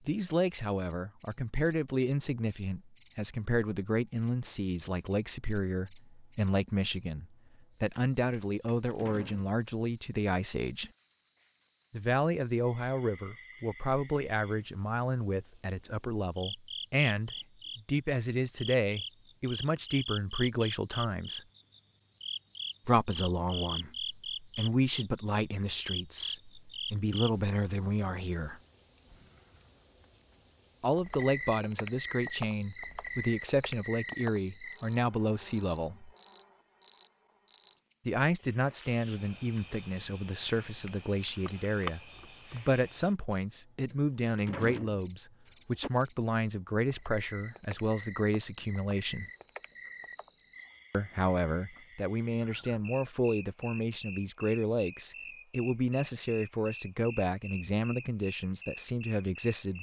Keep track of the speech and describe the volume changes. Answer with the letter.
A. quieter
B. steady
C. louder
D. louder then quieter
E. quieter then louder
B.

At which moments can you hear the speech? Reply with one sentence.
You can hear the speech from 0.1 to 10.9 s, from 11.9 to 21.4 s, from 22.9 to 28.6 s, from 30.8 to 36.1 s, from 38.0 to 49.2 s and from 50.9 to 59.7 s.